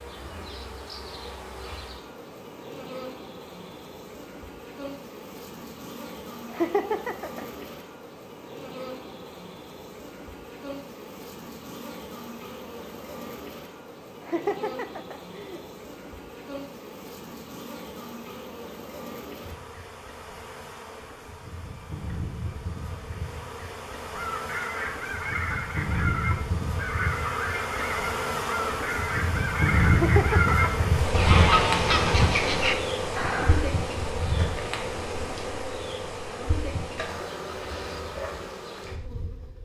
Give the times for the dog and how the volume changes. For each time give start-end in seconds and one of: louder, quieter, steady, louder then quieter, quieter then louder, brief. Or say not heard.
not heard.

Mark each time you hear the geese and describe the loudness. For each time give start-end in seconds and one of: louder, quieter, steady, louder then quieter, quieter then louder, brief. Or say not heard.
24.1-33.7 louder.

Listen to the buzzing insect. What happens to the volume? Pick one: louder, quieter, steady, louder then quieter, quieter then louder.
louder.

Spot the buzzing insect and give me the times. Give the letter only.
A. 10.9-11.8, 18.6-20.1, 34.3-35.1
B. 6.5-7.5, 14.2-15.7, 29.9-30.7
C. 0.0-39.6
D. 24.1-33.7
C.